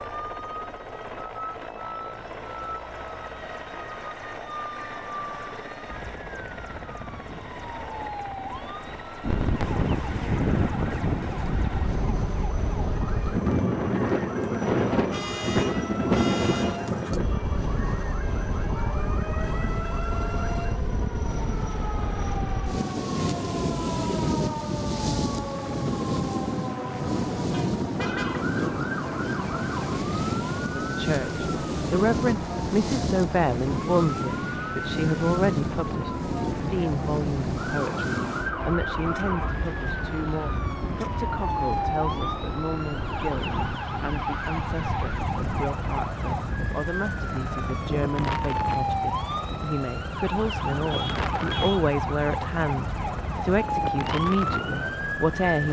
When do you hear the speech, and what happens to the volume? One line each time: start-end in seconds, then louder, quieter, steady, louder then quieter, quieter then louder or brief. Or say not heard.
30.8-55.6 quieter then louder.